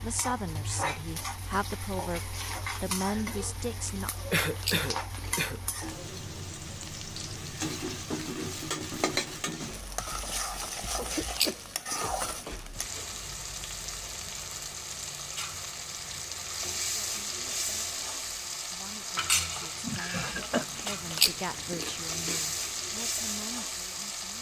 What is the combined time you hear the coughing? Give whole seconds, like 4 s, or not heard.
4 s.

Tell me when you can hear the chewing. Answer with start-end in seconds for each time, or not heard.
3.8-5.5, 10.6-13.2, 20.4-22.6.